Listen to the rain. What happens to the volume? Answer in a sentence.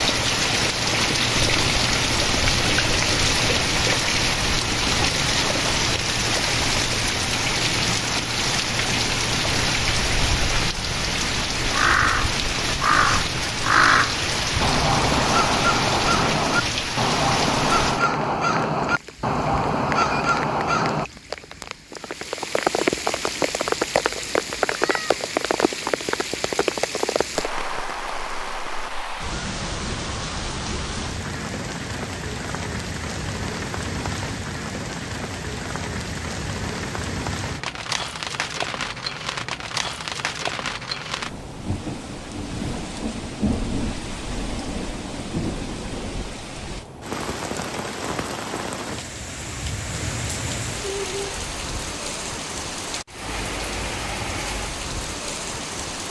The volume of the rain goes down.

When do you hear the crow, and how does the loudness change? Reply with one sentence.
The crow can be heard from 11.7 to 21.1 s, at a steady volume.